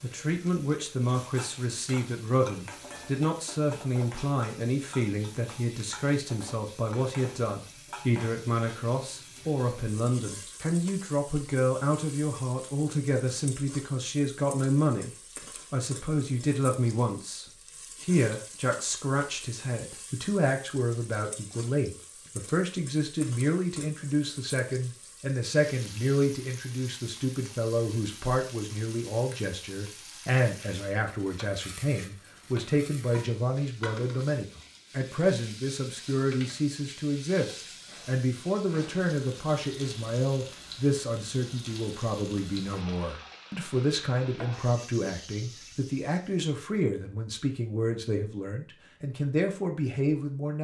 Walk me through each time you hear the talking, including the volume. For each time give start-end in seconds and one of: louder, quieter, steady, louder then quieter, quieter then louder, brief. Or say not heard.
0.0-15.1 steady
15.7-50.5 steady.